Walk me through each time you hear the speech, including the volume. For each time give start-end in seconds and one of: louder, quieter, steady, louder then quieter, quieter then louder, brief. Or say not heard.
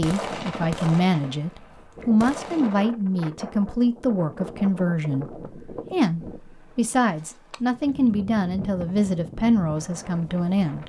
0.0-10.8 steady.